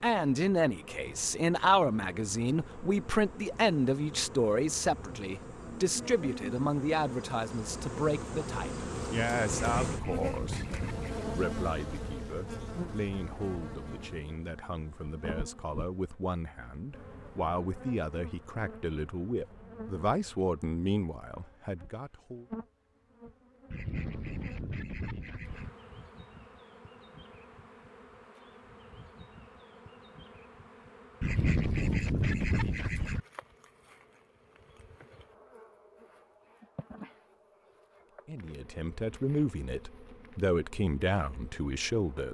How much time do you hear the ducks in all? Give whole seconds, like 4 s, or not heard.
6 s.